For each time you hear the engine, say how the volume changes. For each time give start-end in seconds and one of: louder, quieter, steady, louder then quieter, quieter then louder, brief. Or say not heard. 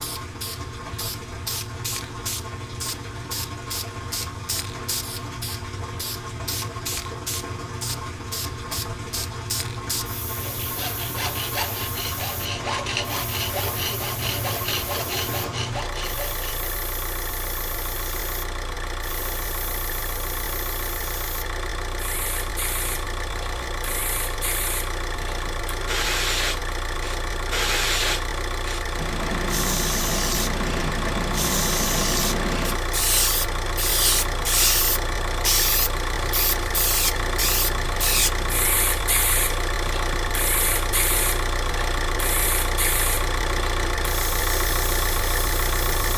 0.0-46.1 louder.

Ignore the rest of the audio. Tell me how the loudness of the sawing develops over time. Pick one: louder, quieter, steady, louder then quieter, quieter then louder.
steady.